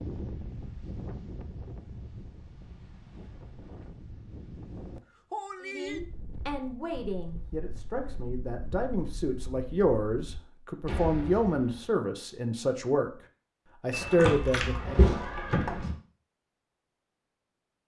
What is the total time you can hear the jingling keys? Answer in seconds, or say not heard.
2 s.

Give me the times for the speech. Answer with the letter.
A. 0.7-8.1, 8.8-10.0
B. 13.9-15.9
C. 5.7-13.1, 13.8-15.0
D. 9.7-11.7
C.